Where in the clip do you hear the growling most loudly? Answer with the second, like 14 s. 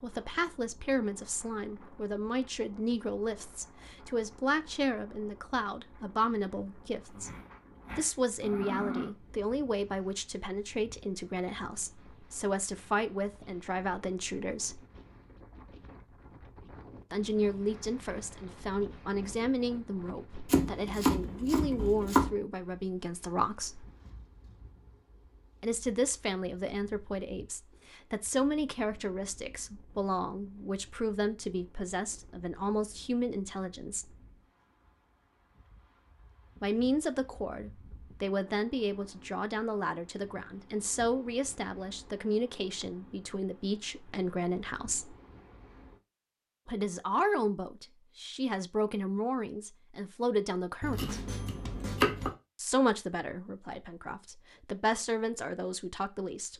9 s.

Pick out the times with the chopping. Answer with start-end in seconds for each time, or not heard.
20.4-22.3, 50.8-52.4.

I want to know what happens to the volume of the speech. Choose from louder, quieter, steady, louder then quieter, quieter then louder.
steady.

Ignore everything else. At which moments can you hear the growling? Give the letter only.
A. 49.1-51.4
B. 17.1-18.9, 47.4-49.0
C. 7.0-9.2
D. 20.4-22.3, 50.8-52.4
C.